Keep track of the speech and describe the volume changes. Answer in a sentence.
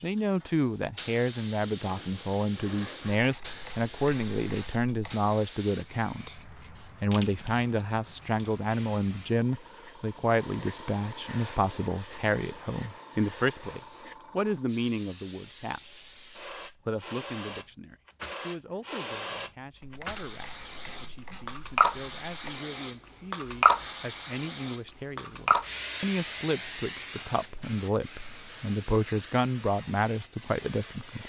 The volume of the speech goes down, then up.